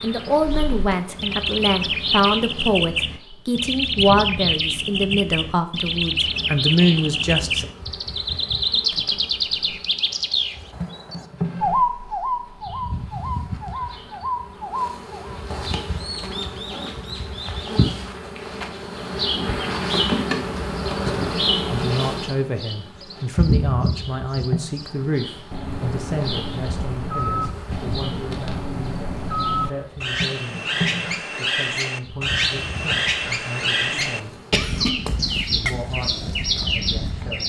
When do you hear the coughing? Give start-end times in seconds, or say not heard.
33.9-35.0.